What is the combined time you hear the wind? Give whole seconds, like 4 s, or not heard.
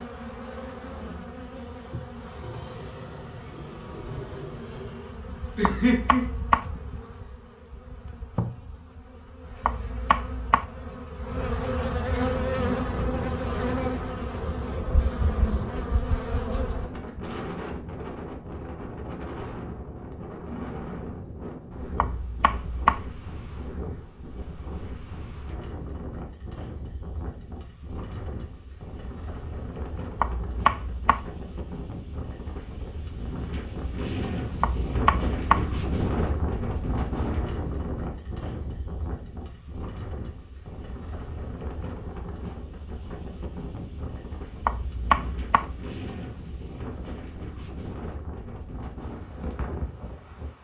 38 s.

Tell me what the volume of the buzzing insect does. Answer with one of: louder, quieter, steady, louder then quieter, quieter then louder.
louder.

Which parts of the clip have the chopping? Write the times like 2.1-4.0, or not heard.
5.6-6.7, 9.6-10.7, 21.9-23.0, 30.1-31.2, 34.6-35.6, 44.6-45.6.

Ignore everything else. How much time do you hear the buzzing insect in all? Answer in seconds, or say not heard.
17 s.